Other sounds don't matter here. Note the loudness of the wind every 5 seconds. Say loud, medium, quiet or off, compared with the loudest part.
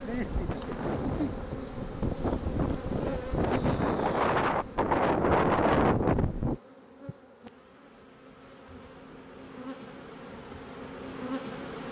medium, loud, off.